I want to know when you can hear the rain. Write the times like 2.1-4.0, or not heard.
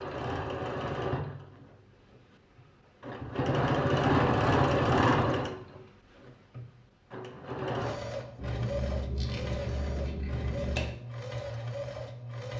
not heard.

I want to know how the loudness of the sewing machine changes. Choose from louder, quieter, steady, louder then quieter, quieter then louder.
louder then quieter.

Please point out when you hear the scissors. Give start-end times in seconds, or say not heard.
8.3-11.0.